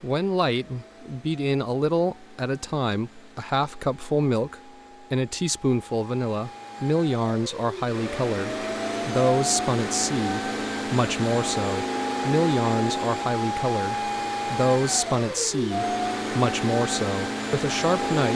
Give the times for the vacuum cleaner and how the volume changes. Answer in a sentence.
You can hear the vacuum cleaner from 0.0 to 18.3 s, getting louder.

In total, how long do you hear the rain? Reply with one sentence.
The rain can't be heard in this clip.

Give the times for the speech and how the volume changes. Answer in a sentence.
The speech can be heard from 0.0 to 18.3 s, at a steady volume.